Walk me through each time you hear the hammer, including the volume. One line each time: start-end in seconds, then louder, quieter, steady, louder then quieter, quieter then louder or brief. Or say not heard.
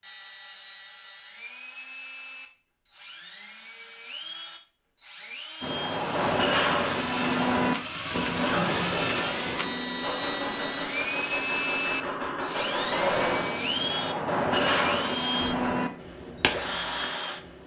5.6-16.8 quieter then louder.